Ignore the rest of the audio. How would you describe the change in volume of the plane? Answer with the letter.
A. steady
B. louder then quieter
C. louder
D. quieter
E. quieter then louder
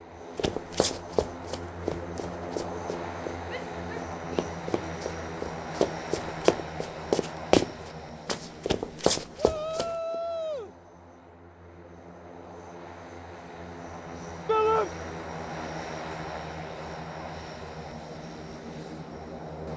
E.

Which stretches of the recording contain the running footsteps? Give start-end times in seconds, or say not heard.
0.3-9.9.